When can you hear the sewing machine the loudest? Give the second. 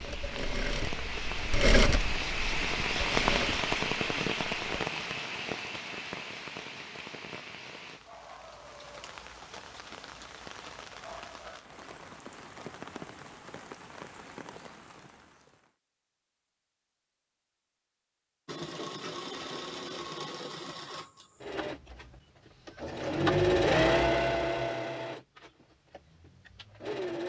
24 s.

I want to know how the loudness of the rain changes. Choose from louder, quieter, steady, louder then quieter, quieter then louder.
quieter.